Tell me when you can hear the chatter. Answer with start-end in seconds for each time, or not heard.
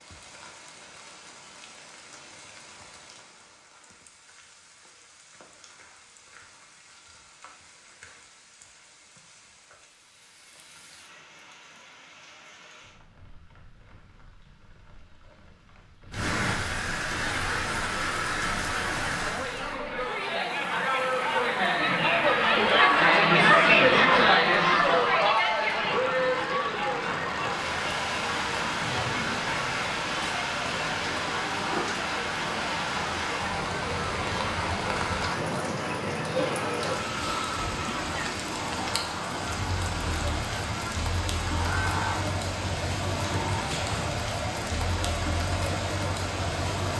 17.1-46.9.